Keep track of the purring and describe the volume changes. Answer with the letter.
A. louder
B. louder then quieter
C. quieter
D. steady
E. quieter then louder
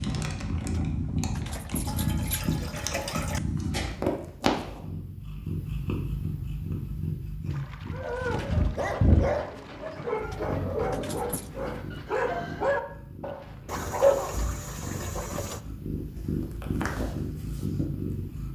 E.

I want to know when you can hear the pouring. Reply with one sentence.
The pouring can be heard from 1.4 to 3.4 s, from 7.5 to 9.8 s and from 13.7 to 15.7 s.